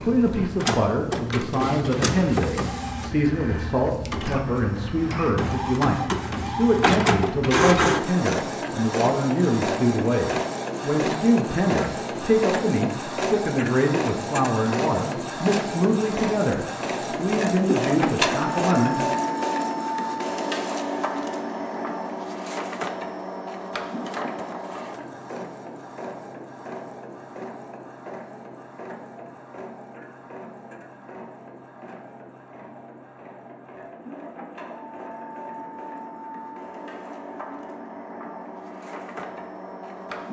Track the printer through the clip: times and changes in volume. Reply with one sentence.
The printer can be heard from 0.0 to 40.2 s, getting quieter.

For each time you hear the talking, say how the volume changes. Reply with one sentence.
You can hear the talking from 0.0 to 19.0 s, at a steady volume.